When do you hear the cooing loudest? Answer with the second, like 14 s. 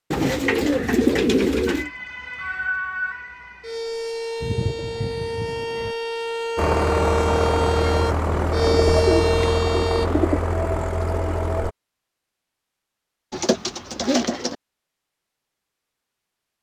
1 s.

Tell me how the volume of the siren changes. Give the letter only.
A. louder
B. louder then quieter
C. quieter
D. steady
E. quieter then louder
A.